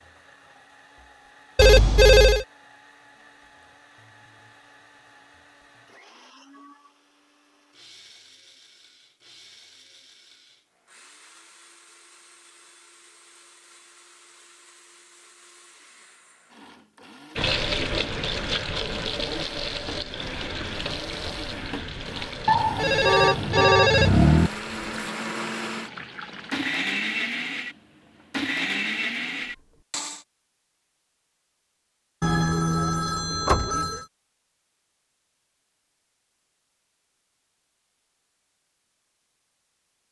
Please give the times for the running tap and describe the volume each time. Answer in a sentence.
The running tap can be heard from 17.4 to 26.8 s, getting quieter.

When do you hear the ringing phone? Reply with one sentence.
The ringing phone can be heard from 1.6 to 2.5 s, from 22.4 to 24.5 s and from 32.2 to 34.0 s.